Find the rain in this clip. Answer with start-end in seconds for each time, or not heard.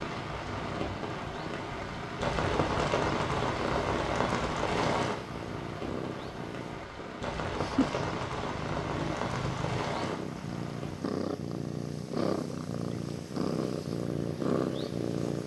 0.0-11.2.